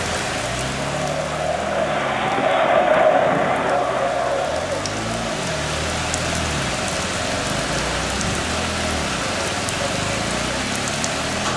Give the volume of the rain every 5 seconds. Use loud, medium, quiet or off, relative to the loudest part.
medium, loud, loud.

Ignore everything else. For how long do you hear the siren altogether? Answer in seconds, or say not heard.
not heard.